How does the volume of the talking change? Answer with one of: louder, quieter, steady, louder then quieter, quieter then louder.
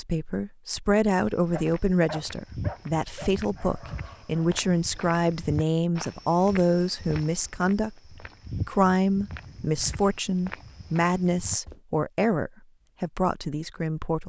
steady.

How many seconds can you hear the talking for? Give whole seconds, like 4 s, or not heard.
14 s.